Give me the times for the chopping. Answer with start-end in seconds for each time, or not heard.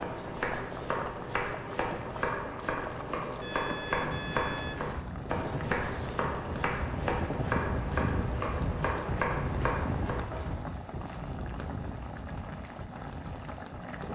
0.0-10.6.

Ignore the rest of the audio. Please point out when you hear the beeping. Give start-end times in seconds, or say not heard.
3.4-4.8.